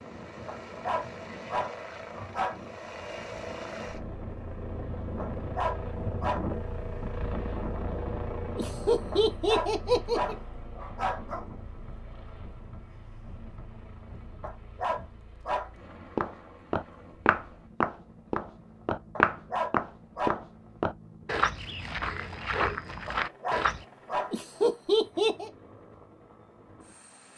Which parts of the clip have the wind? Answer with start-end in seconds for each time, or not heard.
0.0-15.2.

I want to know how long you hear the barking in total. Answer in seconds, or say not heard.
10 s.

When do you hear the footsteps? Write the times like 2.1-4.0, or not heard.
16.1-23.9.